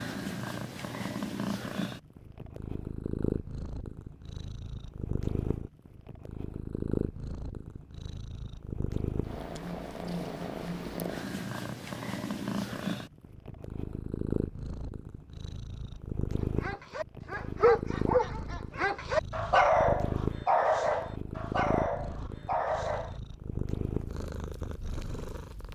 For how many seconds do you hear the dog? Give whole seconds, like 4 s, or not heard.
7 s.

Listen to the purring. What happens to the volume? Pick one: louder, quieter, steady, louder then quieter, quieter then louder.
steady.